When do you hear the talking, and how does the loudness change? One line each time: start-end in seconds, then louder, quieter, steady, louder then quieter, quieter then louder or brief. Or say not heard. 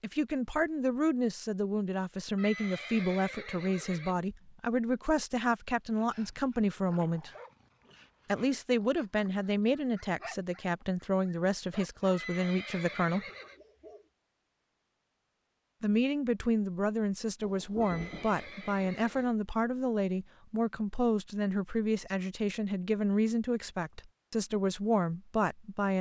0.0-7.3 steady
8.2-13.2 steady
15.8-25.9 steady.